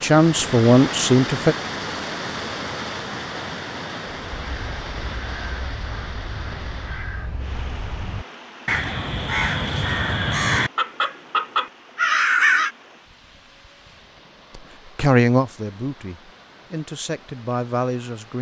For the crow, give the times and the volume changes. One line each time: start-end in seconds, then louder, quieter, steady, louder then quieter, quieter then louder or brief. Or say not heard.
4.3-12.7 louder.